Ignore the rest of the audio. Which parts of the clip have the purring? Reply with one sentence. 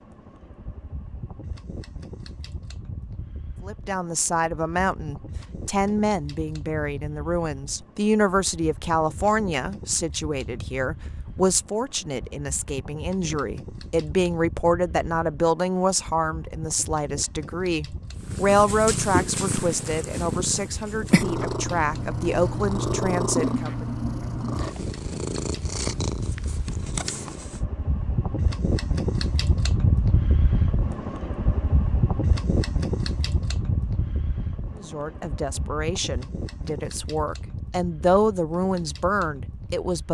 The purring can be heard from 18.1 to 27.6 s.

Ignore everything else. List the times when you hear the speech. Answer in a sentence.
You can hear the speech from 3.6 to 23.9 s and from 34.8 to 40.0 s.